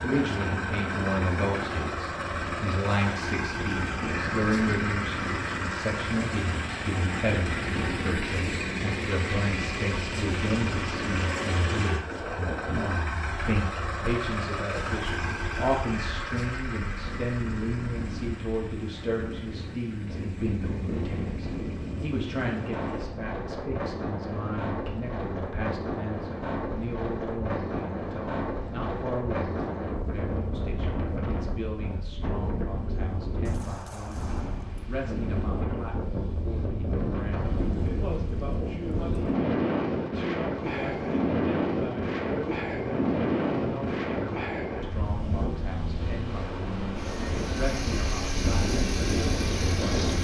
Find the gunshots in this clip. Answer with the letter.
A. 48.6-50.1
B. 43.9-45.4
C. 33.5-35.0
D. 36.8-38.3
C.